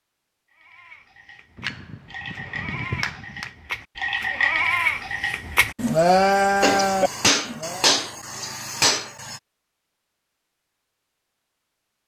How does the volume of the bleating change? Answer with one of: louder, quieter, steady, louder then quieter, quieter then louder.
louder.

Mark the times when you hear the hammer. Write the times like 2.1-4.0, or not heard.
1.6-3.5, 6.6-9.4.